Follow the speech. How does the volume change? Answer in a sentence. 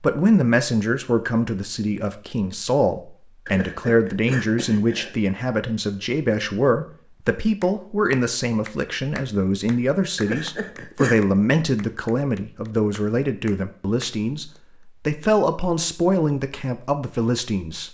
The volume of the speech stays about the same.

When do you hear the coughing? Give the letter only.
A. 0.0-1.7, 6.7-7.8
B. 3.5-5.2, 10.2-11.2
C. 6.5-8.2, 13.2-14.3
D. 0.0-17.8
B.